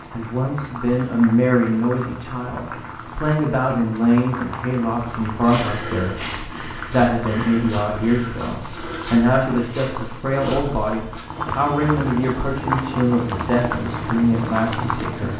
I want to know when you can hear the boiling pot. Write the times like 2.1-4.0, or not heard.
0.0-15.3.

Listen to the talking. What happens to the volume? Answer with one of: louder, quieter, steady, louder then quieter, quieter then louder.
steady.